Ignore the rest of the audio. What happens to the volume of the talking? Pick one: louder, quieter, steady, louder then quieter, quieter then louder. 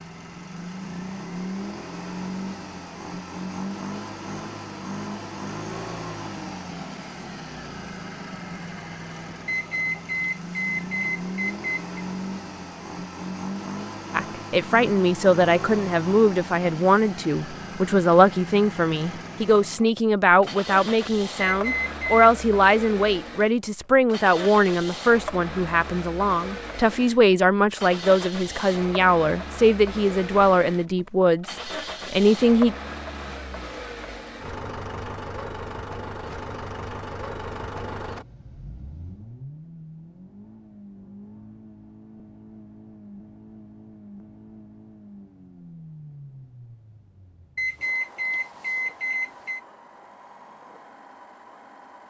steady.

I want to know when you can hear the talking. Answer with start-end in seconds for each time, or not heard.
14.1-32.8.